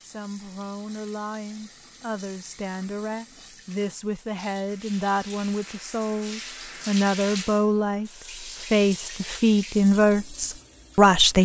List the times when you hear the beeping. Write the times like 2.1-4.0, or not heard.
not heard.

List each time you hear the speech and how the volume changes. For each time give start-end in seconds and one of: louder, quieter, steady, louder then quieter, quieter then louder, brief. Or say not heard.
0.0-11.3 louder.